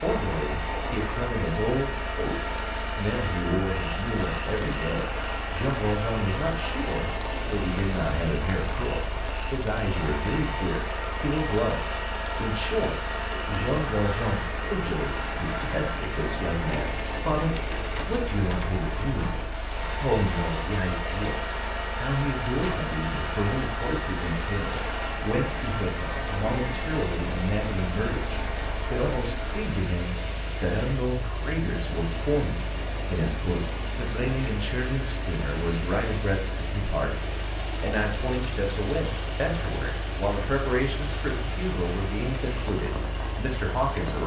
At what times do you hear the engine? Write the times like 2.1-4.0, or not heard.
0.0-44.2.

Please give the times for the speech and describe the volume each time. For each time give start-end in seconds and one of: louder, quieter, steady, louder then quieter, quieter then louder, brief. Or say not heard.
0.0-44.2 steady.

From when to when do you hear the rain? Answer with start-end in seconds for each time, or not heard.
0.0-44.2.